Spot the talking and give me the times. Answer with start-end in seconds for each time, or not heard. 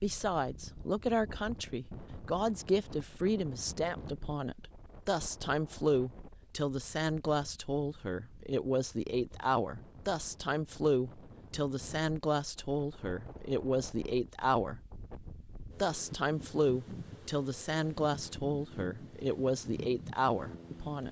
0.0-14.8, 15.8-21.0.